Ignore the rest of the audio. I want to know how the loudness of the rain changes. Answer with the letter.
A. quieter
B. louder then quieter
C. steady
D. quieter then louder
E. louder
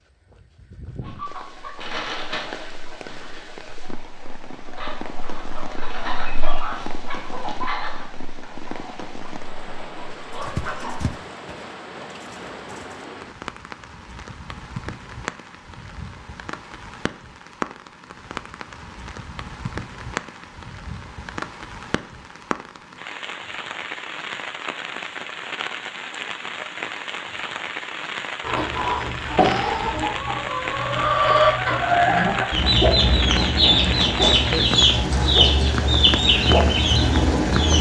E.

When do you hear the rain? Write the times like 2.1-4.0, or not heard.
0.0-37.7.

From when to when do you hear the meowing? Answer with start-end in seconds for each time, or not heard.
not heard.